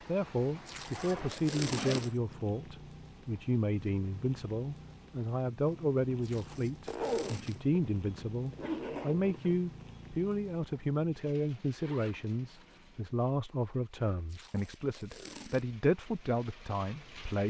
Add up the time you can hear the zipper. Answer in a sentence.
You can hear the zipper for 5 seconds altogether.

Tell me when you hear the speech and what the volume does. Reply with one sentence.
The speech can be heard from 0.1 to 17.4 s, at a steady volume.